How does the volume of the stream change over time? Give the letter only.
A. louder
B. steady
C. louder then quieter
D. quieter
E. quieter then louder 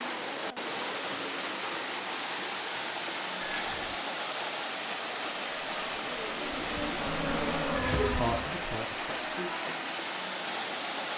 B.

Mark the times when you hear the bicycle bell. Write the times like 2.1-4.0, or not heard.
3.4-4.0, 7.8-8.2.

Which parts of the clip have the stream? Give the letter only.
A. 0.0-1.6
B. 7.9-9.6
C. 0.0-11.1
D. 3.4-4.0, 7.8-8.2
C.